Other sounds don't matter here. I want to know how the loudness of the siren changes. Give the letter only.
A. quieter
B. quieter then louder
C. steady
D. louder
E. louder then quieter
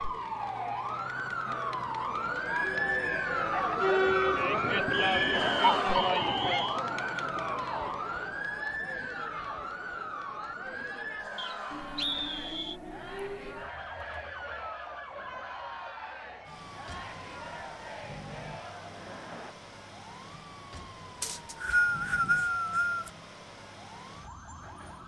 A.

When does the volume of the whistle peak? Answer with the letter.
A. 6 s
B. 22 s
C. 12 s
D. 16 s
B.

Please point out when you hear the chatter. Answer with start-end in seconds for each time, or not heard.
0.0-19.6.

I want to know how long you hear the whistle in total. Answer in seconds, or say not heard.
5 s.